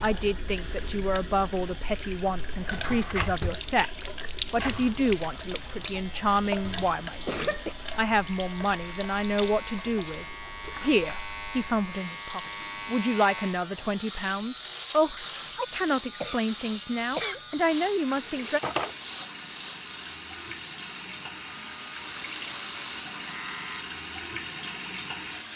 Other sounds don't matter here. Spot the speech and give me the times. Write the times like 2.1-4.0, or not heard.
0.0-18.6.